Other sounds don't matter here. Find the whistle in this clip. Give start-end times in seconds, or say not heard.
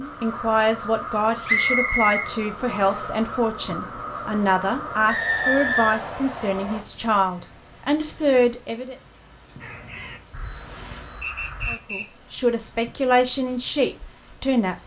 1.4-3.0, 5.0-6.8, 11.2-12.1.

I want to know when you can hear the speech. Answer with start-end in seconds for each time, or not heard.
0.0-8.9, 11.7-14.8.